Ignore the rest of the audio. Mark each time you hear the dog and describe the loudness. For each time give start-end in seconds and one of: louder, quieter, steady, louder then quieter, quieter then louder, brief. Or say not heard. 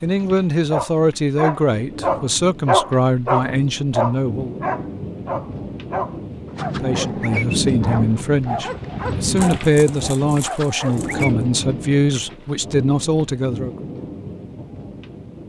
0.7-11.3 quieter.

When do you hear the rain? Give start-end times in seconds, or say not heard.
0.0-15.4.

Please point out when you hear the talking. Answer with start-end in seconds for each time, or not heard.
0.0-4.6, 6.6-13.8.